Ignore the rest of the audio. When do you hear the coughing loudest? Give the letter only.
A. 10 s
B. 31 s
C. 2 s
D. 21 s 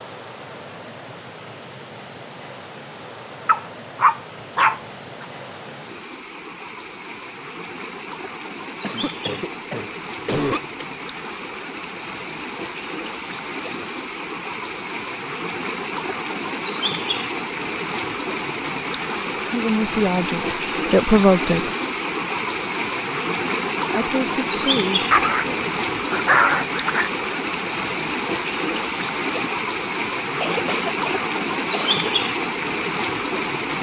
A.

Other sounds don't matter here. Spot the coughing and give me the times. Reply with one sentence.
You can hear the coughing from 8.8 to 10.7 s and from 30.4 to 32.0 s.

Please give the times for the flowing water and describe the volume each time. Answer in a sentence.
The flowing water can be heard from 0.0 to 33.7 s, getting louder.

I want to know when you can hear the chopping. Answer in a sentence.
You can't hear the chopping here.